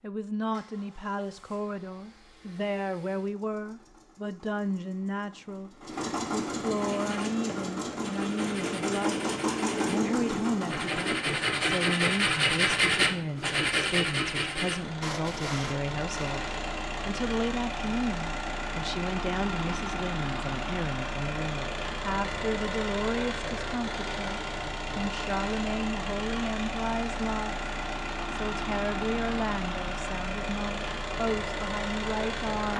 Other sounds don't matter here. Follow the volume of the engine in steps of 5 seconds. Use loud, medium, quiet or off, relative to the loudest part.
quiet, loud, loud, loud, loud, loud, loud.